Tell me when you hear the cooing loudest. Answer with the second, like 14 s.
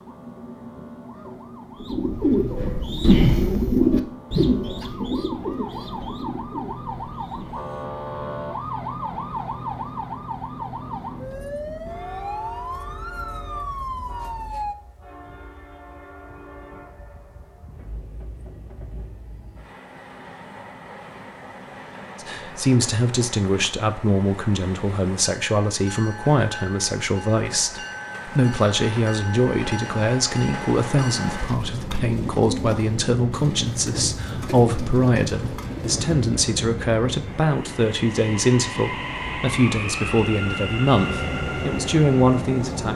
3 s.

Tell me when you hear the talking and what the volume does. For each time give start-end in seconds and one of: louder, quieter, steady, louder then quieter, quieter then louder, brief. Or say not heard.
22.2-42.9 steady.